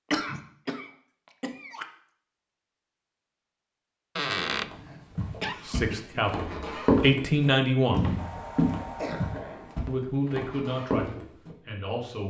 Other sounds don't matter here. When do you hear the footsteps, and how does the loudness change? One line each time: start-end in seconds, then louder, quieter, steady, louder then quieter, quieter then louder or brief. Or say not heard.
4.7-11.6 louder then quieter.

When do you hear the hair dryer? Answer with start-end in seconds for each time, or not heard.
8.2-9.8.